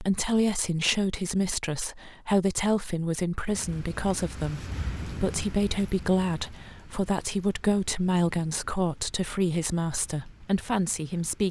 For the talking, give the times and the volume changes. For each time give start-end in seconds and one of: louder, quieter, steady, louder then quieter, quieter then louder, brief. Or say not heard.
0.0-11.4 steady.